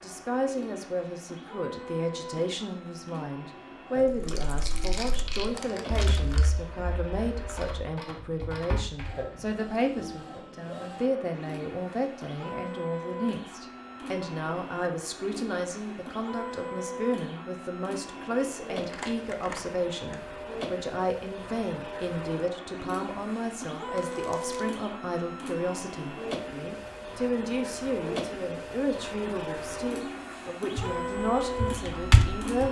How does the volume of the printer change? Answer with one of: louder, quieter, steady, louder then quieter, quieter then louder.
louder.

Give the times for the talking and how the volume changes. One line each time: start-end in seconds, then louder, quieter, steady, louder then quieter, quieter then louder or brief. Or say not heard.
0.0-32.6 steady.